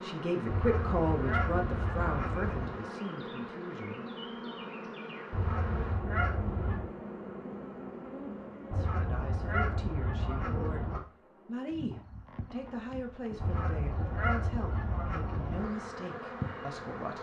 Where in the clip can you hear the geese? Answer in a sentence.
You can hear the geese from 0.5 to 2.8 s, from 5.3 to 6.9 s, from 8.7 to 11.0 s and from 13.4 to 15.7 s.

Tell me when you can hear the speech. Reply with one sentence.
The speech can be heard from 0.0 to 4.0 s and from 8.8 to 17.1 s.